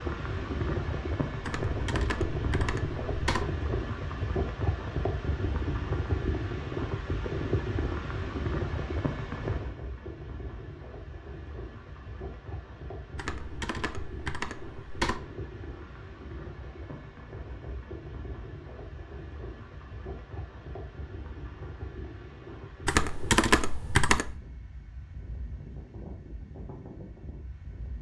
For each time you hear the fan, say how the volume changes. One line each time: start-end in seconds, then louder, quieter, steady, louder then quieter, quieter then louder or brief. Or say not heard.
0.0-27.9 quieter.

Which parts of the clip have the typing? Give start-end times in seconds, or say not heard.
1.4-3.5, 13.2-15.2, 22.9-24.4.